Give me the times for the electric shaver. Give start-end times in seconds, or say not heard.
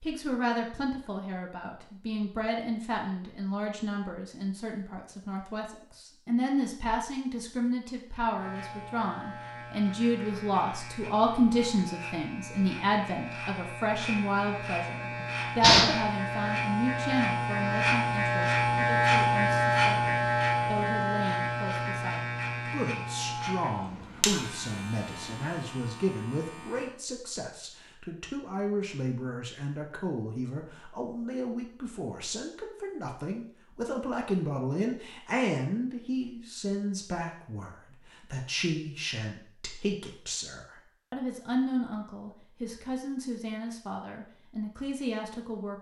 8.3-26.9.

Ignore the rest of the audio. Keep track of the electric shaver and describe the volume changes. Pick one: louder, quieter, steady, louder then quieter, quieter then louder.
louder then quieter.